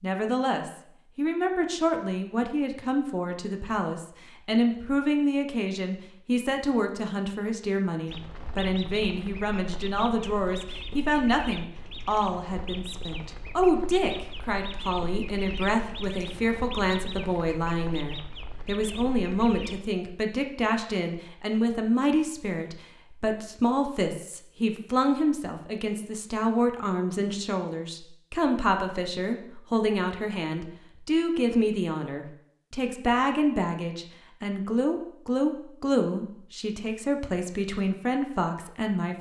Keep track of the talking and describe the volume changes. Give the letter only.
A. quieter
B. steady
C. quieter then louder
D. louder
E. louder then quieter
B.